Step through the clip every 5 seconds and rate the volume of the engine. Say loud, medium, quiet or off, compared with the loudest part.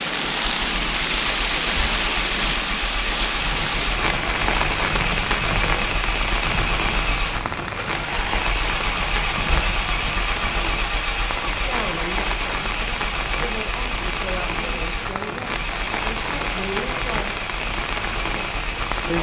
loud, loud, loud, medium.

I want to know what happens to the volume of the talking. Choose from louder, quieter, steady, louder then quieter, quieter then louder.
steady.